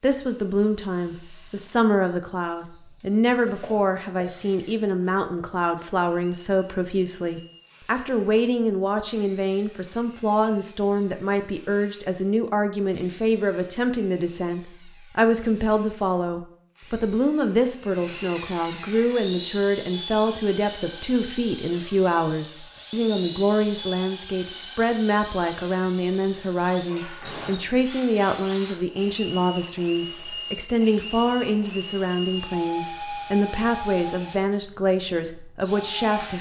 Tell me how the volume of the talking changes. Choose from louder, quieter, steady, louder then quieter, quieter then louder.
steady.